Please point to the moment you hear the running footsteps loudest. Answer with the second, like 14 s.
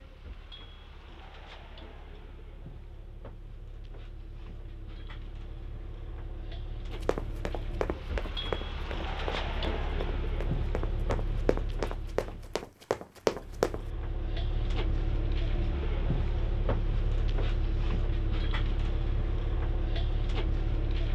13 s.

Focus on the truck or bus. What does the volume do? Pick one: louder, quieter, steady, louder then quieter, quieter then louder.
louder.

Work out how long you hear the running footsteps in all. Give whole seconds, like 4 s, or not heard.
7 s.